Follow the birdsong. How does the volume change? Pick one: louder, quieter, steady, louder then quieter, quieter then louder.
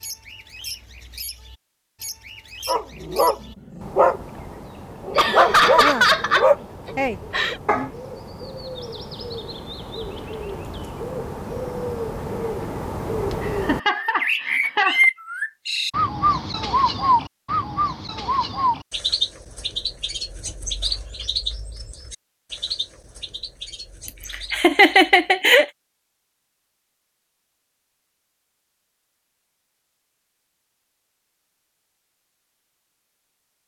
louder then quieter.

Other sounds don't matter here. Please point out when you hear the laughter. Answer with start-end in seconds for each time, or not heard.
5.2-7.6, 13.4-15.1, 24.5-25.6.